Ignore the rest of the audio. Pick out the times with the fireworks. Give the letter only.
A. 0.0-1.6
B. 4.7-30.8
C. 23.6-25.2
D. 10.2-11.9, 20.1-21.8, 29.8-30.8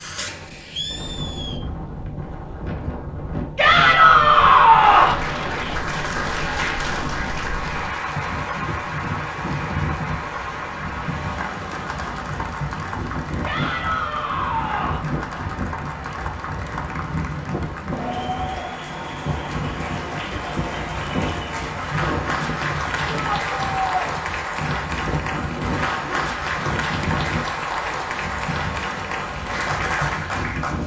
A.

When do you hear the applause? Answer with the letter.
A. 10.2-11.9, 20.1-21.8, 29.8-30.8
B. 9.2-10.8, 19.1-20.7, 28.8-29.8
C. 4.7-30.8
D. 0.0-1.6
C.